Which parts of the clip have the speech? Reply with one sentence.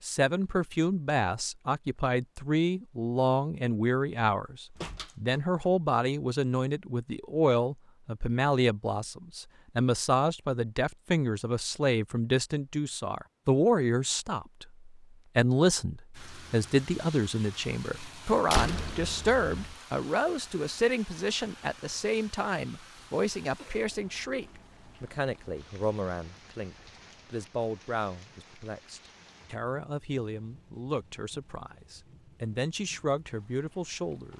The speech can be heard from 0.0 to 34.3 s.